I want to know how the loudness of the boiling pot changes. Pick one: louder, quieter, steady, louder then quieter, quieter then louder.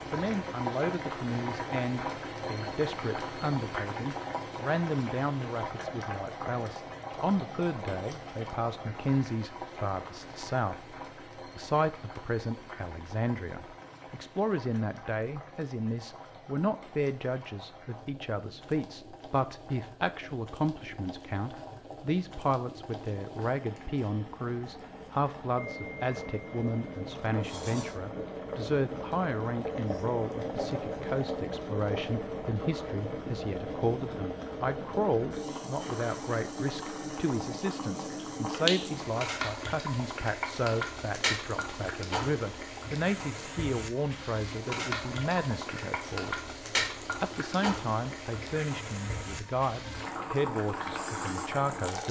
quieter then louder.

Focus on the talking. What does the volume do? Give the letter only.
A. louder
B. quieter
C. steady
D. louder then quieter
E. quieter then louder
C.